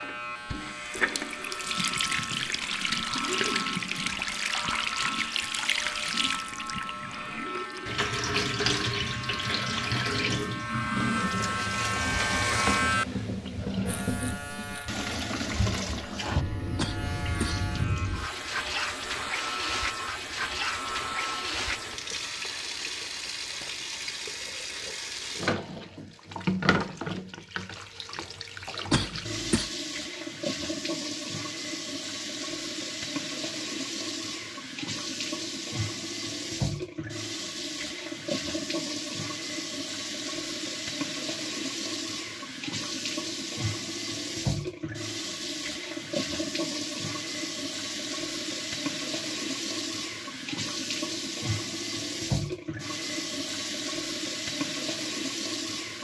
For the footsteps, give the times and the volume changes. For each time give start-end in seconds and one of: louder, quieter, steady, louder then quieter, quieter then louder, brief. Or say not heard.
not heard.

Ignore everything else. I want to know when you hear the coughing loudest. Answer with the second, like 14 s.
29 s.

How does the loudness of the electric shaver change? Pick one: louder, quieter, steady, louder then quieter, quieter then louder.
louder then quieter.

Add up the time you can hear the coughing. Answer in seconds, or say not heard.
2 s.